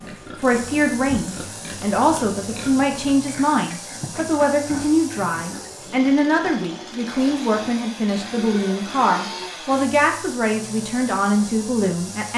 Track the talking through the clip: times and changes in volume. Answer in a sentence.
The talking can be heard from 0.3 to 12.3 s, at a steady volume.